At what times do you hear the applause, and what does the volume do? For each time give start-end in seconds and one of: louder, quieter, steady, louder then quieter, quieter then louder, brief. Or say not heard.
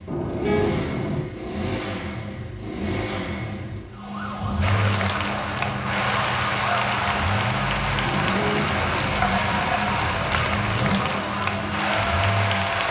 4.6-12.8 steady.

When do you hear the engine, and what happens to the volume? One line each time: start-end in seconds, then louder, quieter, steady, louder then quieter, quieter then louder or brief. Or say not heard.
0.0-12.8 steady.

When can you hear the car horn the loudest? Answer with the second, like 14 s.
1 s.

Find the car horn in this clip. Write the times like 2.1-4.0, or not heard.
0.1-1.2, 8.0-9.2.